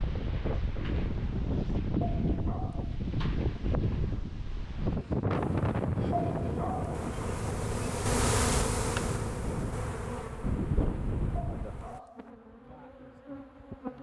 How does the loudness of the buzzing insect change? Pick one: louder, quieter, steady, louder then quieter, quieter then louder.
louder then quieter.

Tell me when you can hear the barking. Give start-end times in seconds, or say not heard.
2.0-3.0, 6.1-7.0, 11.3-12.3.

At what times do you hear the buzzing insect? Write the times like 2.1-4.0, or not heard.
5.3-13.9.